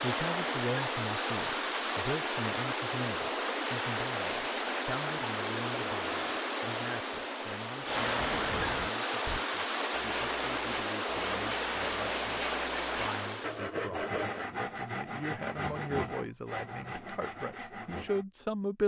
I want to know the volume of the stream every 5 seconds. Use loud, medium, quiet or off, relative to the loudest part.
loud, loud, loud, off.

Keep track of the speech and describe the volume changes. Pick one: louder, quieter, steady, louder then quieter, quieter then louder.
quieter then louder.